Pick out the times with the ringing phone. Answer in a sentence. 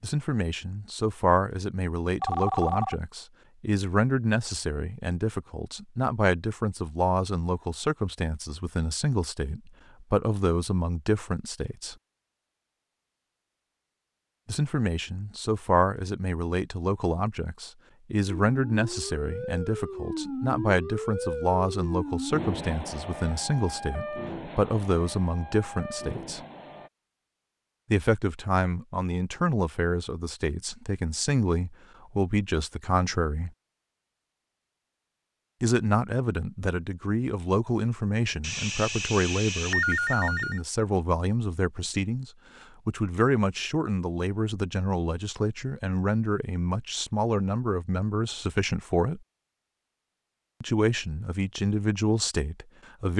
You can hear the ringing phone from 2.2 to 3.0 s and from 38.4 to 40.6 s.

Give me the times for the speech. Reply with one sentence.
You can hear the speech from 0.0 to 11.9 s, from 14.4 to 26.4 s, from 27.9 to 33.5 s, from 35.6 to 49.2 s and from 50.6 to 53.1 s.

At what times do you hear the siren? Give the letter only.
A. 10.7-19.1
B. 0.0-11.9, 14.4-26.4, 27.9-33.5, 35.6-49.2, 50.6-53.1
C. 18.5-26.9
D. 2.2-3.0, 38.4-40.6
C.